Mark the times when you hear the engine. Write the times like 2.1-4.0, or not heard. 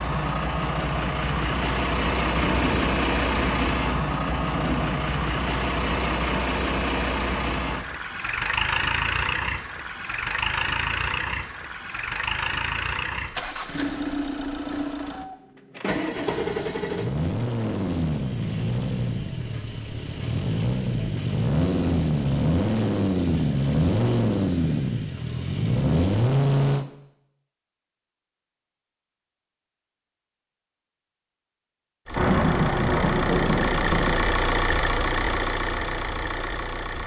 0.0-26.9, 32.0-37.0.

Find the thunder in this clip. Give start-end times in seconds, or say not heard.
2.3-5.0, 32.1-34.1.